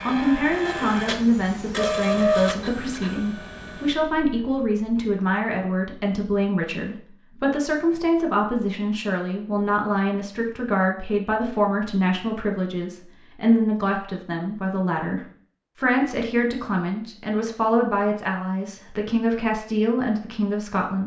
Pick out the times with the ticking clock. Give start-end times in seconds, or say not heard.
not heard.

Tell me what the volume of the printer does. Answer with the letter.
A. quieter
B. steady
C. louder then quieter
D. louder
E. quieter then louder
C.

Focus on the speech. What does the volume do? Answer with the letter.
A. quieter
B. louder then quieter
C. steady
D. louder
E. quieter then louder
C.